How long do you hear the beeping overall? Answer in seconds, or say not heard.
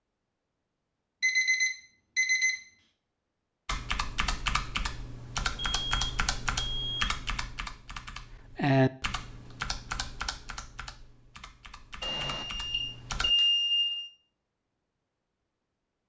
5 s.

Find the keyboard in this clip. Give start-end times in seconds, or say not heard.
3.6-13.3.